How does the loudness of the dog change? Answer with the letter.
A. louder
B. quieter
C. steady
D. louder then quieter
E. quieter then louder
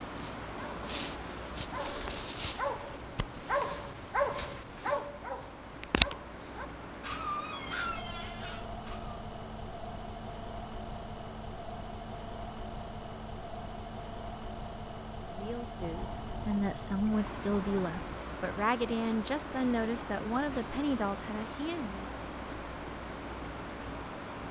D.